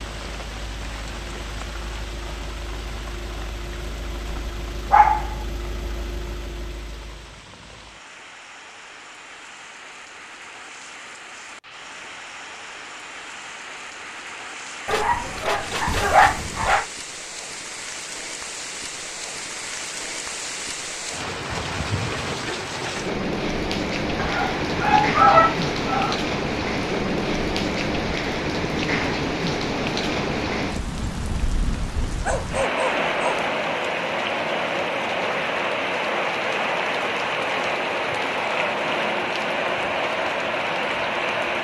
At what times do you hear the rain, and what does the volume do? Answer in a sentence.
You can hear the rain from 0.0 to 41.6 s, getting louder.